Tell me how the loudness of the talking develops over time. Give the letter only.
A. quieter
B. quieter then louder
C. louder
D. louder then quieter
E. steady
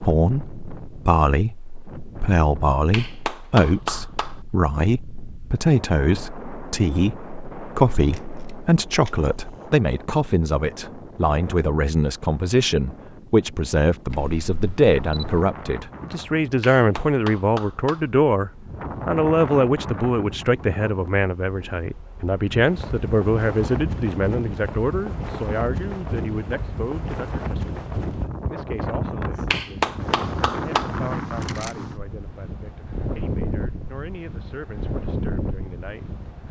A.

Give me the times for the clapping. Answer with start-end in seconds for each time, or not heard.
2.9-4.4, 16.6-18.1, 29.5-30.9.